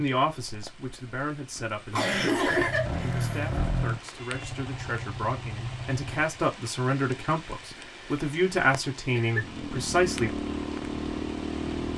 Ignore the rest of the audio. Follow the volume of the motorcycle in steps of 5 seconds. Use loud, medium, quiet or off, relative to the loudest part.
loud, medium, loud.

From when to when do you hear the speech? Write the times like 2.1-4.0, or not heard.
0.0-10.3.